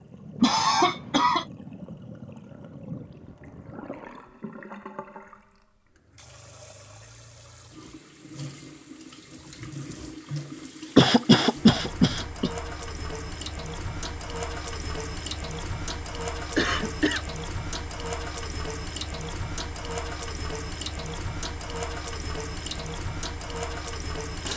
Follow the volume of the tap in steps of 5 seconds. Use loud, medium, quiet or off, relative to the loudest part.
medium, medium, loud, loud, loud.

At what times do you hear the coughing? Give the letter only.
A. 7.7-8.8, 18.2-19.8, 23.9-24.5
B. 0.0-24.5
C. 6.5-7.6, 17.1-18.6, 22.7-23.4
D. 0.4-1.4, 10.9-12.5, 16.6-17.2
D.